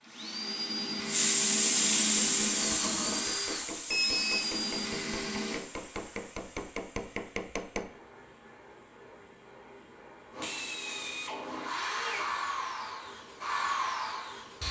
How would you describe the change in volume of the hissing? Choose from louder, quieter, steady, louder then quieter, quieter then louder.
quieter.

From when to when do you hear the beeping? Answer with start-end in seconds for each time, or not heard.
3.9-4.5.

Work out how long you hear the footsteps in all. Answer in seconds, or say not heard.
not heard.